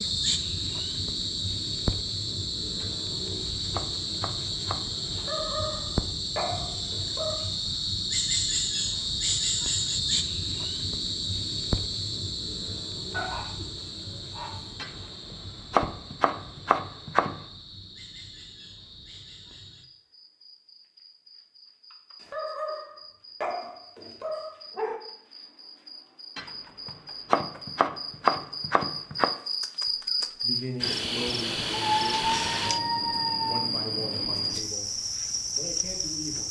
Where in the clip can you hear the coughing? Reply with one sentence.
You can't hear the coughing here.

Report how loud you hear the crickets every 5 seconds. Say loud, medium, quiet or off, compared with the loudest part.
loud, loud, loud, quiet, quiet, medium, loud, loud.